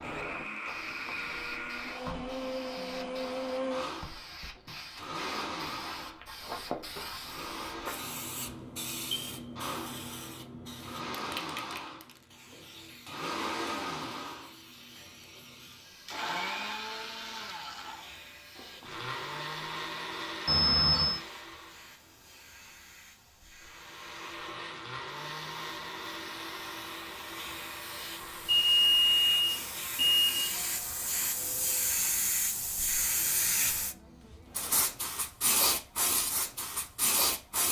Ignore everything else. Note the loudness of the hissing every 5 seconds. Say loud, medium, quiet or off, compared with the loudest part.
quiet, medium, quiet, quiet, quiet, quiet, loud, loud.